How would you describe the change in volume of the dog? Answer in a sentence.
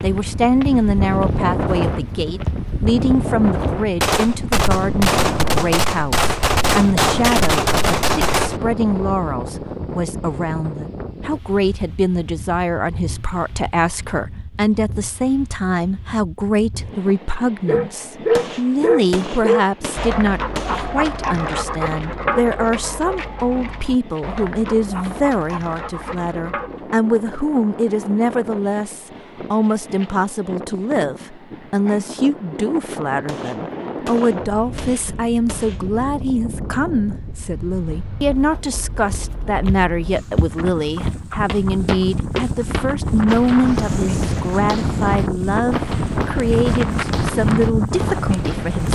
The volume of the dog goes down.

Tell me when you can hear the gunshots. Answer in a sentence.
The gunshots can be heard from 4.0 to 8.6 s, from 18.4 to 21.0 s and from 33.2 to 35.9 s.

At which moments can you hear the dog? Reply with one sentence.
The dog can be heard from 17.6 to 26.9 s.